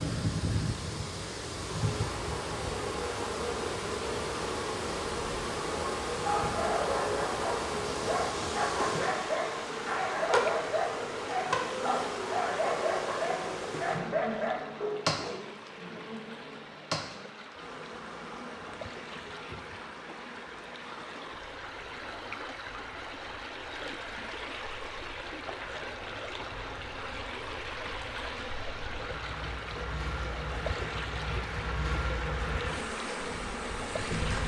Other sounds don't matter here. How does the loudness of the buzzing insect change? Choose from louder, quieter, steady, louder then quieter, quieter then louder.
quieter then louder.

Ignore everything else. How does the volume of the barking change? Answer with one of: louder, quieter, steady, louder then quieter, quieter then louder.
steady.